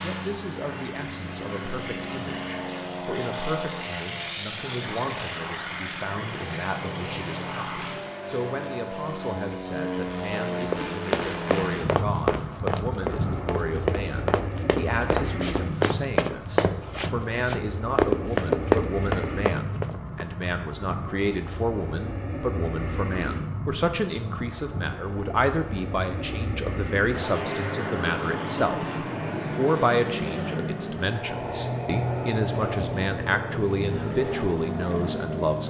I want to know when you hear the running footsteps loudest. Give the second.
19 s.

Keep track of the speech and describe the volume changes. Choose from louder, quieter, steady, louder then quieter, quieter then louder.
louder.